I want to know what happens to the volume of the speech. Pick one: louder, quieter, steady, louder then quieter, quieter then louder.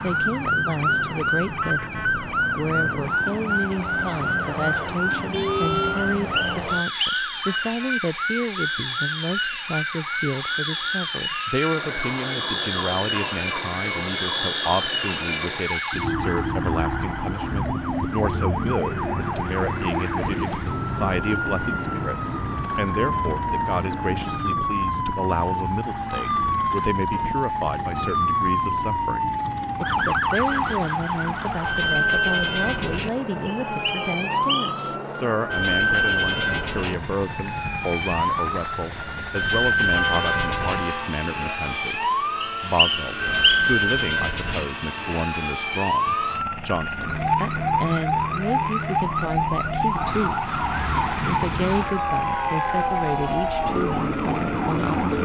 steady.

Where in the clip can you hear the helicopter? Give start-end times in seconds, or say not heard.
0.0-55.2.